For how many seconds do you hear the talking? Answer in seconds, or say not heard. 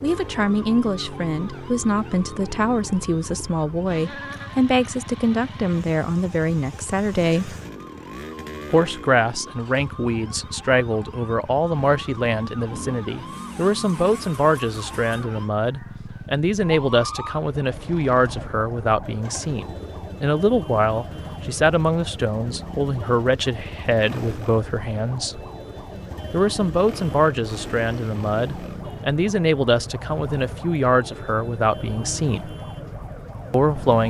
31 s.